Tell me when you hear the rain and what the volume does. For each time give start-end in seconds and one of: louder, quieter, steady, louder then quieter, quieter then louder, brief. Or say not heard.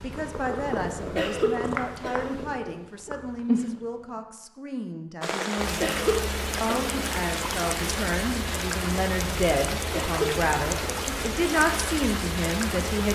5.2-13.1 steady.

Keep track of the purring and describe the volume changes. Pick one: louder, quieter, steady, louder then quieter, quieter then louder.
quieter then louder.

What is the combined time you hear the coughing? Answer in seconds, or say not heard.
4 s.